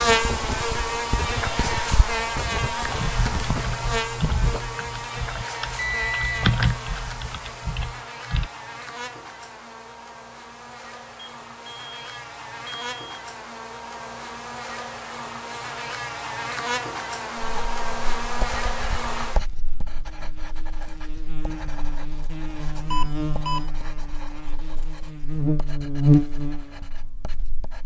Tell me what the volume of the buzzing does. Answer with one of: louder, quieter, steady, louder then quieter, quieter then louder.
quieter then louder.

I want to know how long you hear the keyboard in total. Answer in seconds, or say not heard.
6 s.